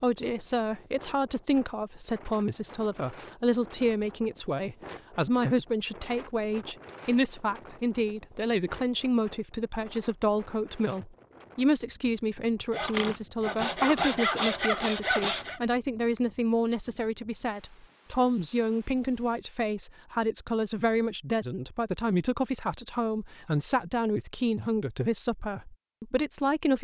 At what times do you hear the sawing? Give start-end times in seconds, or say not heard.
12.7-15.6.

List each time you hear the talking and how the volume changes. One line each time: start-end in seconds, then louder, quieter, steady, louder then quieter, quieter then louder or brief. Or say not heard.
0.0-26.7 steady.